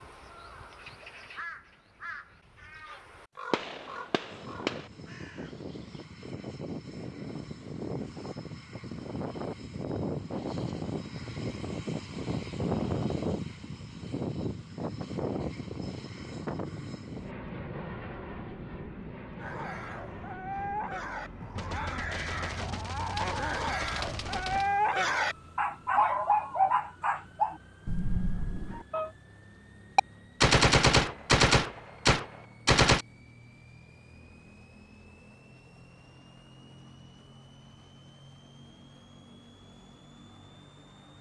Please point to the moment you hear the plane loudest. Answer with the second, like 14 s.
13 s.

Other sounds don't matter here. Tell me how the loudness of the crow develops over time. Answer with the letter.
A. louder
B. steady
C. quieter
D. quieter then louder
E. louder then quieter
C.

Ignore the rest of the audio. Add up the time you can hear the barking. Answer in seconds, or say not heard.
10 s.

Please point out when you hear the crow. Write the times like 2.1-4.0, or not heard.
0.0-6.1.